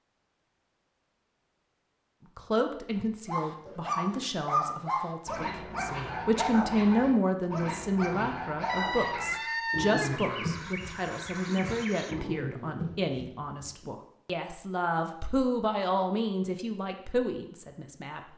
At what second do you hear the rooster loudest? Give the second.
10 s.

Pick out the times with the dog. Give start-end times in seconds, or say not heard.
3.2-13.9.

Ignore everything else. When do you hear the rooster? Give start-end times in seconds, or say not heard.
8.7-12.2.